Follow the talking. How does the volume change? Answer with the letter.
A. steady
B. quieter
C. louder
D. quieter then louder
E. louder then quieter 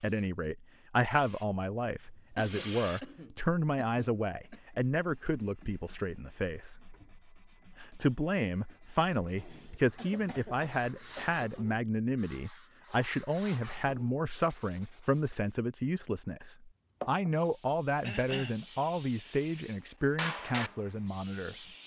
A.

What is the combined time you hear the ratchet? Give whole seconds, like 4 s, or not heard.
not heard.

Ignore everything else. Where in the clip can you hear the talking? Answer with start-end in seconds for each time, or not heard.
0.0-7.0, 7.8-21.6.